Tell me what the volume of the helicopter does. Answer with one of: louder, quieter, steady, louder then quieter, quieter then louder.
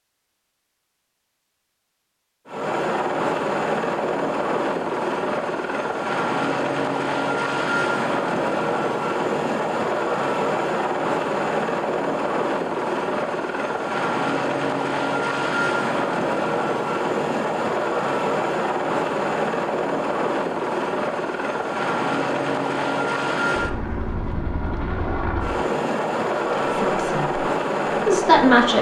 steady.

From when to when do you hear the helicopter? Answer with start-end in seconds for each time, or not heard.
2.5-28.7.